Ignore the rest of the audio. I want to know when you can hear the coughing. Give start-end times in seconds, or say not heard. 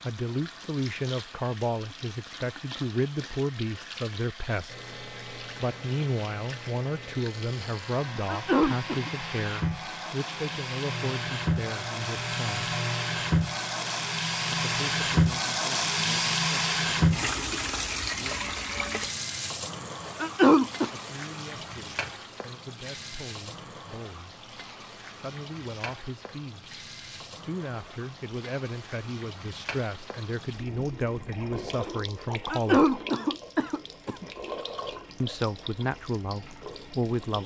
8.2-9.1, 20.2-20.9, 32.5-34.2.